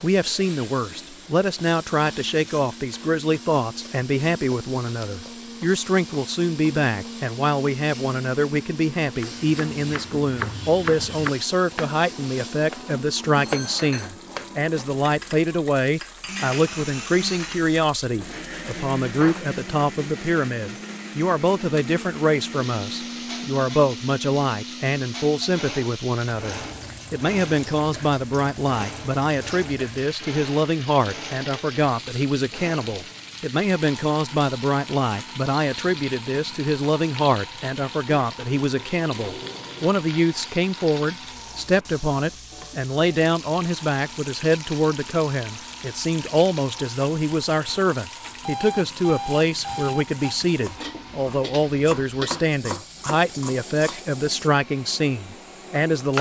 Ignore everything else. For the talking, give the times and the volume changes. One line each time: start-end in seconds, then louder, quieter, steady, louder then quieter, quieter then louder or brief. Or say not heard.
0.0-56.1 steady.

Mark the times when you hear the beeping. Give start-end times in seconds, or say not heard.
48.4-50.3.